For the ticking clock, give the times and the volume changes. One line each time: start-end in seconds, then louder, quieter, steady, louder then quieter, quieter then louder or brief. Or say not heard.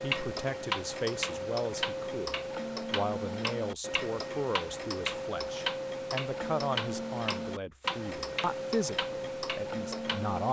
0.0-10.4 steady.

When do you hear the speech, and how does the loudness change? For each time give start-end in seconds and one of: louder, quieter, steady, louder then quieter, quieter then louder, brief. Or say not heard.
0.0-10.4 steady.